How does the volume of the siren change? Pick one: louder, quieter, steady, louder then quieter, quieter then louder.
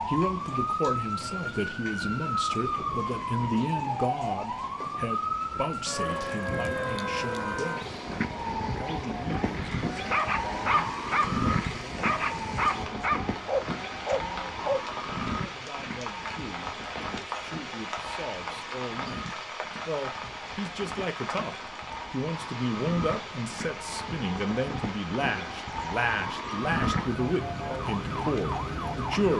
quieter then louder.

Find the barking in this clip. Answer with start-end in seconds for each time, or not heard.
9.3-14.8.